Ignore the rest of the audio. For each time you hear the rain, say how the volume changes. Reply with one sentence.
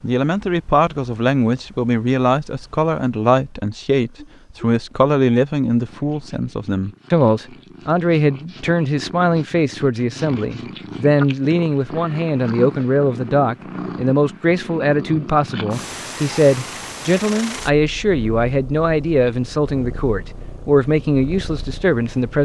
You can't hear the rain here.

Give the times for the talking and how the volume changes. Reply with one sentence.
The talking can be heard from 0.0 to 22.3 s, at a steady volume.